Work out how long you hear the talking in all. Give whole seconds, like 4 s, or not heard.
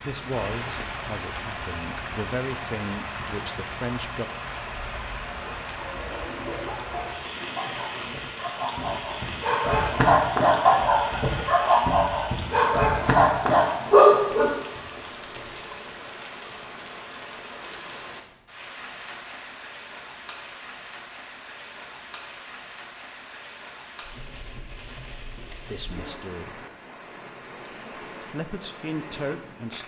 7 s.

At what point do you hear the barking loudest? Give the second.
14 s.